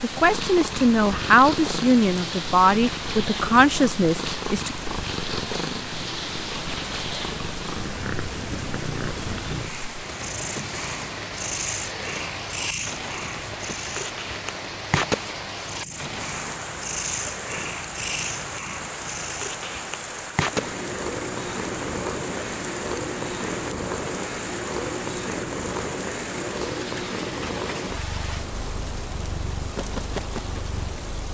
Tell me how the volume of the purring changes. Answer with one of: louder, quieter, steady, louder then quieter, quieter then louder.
steady.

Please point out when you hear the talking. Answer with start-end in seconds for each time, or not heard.
0.0-4.8.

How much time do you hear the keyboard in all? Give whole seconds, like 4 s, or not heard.
not heard.